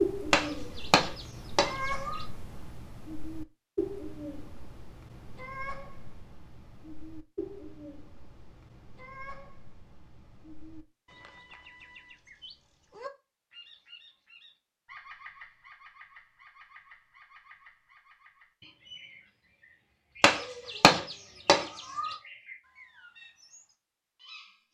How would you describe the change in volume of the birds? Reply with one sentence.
The volume of the birds goes down.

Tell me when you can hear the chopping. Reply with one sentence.
You can hear the chopping from 0.3 to 2.2 s and from 20.2 to 22.1 s.